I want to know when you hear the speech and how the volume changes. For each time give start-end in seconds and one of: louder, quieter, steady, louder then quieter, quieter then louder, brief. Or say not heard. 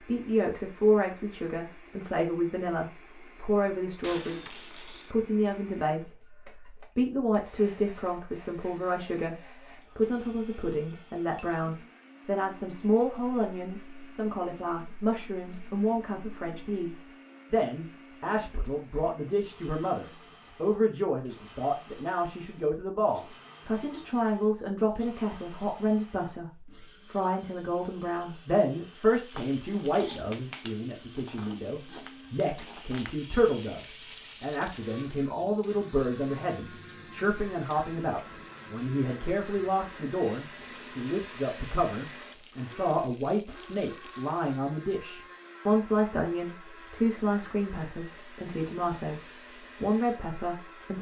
0.0-50.9 steady.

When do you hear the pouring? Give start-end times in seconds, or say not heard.
not heard.